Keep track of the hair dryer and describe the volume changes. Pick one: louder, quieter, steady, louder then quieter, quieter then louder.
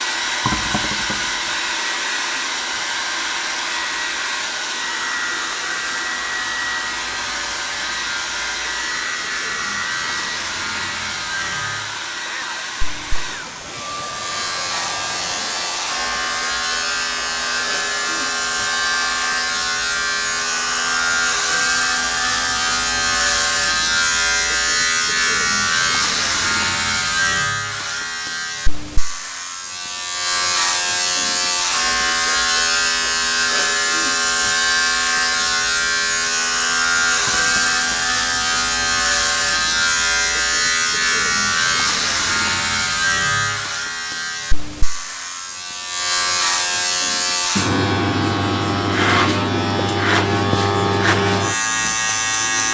quieter.